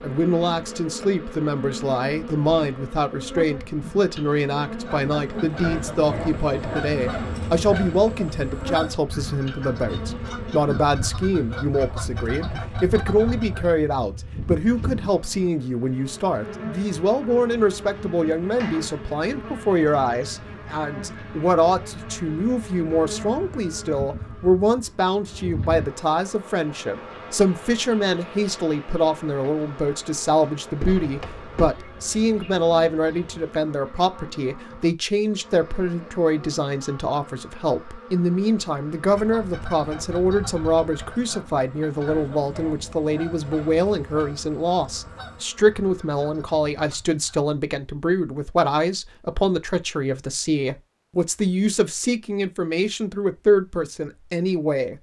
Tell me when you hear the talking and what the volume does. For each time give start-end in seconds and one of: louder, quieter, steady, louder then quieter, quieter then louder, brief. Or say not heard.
0.0-54.9 steady.